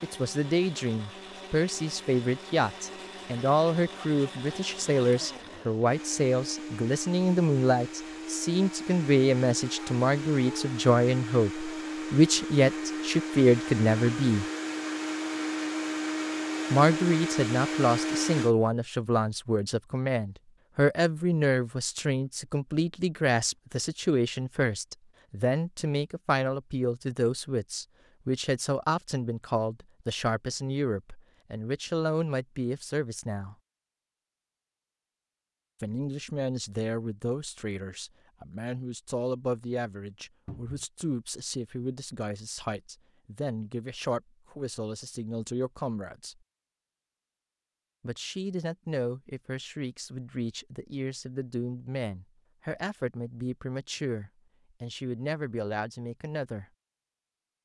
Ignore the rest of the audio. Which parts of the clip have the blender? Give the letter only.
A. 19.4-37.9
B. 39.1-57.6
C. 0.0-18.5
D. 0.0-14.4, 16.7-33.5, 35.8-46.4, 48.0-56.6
C.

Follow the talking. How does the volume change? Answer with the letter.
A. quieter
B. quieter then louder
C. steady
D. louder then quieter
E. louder
A.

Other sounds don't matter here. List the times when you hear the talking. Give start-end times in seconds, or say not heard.
0.0-14.4, 16.7-33.5, 35.8-46.4, 48.0-56.6.